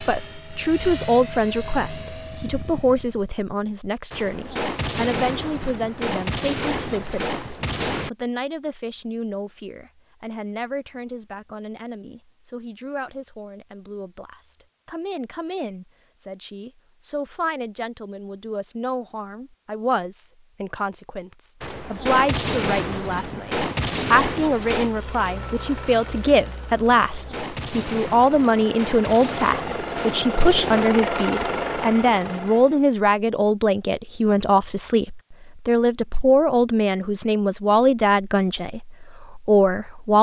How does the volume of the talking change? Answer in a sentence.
The loudness of the talking goes down, then up.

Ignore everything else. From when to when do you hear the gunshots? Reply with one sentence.
The gunshots can be heard from 4.1 to 8.1 s, from 21.6 to 24.9 s and from 26.9 to 30.9 s.